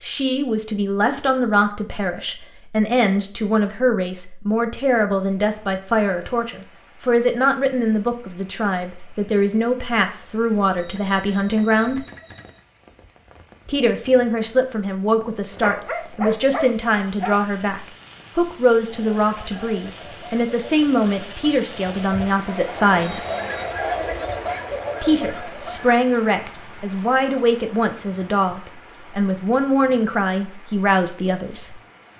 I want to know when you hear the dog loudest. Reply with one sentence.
The volume of the dog peaks at 16 seconds.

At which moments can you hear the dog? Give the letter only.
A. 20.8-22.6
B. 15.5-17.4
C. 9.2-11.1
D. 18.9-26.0
B.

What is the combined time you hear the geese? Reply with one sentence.
The geese can be heard for 7 seconds in total.